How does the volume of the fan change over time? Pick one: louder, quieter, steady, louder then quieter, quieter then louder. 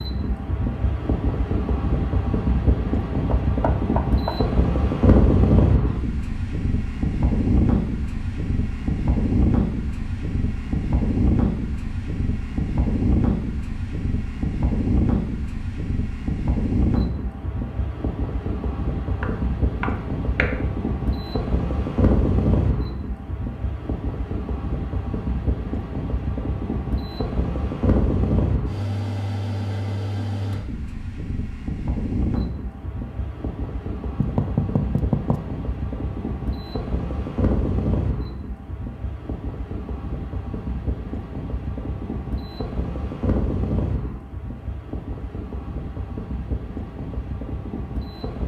quieter.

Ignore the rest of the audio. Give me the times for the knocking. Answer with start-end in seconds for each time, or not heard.
3.3-4.3, 19.2-20.6, 34.2-35.4.